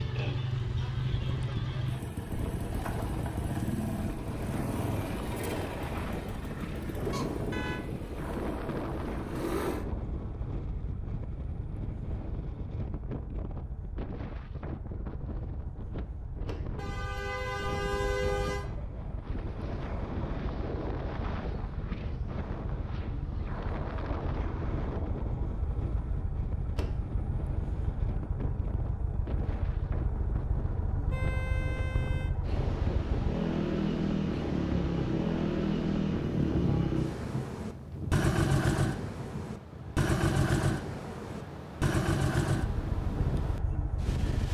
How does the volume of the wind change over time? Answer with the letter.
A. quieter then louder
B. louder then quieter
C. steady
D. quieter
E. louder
C.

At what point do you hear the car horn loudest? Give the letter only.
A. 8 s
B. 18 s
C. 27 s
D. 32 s
B.